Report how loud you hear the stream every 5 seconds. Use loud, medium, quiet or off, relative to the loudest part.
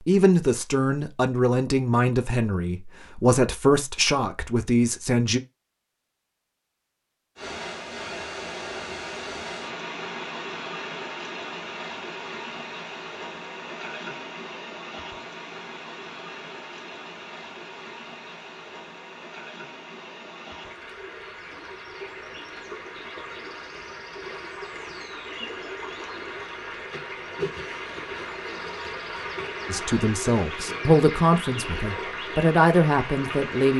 off, loud, loud, medium, medium, loud, loud.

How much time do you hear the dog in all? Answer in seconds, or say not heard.
not heard.